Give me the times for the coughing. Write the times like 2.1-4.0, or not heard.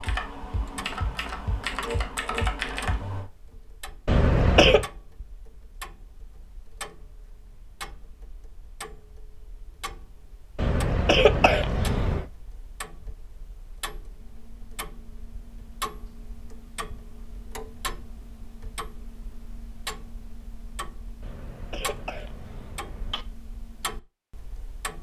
4.0-4.8, 10.6-12.2, 21.2-23.2.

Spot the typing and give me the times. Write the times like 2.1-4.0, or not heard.
0.0-3.2.